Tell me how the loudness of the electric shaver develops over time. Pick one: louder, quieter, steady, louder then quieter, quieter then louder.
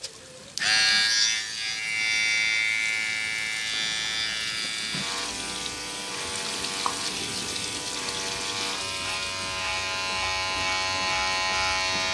quieter then louder.